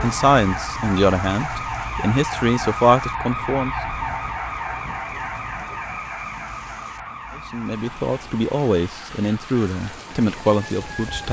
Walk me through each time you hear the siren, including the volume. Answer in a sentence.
You can hear the siren from 0.0 to 11.2 s, getting quieter.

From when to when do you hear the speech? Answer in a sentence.
The speech can be heard from 0.0 to 3.8 s and from 7.3 to 11.2 s.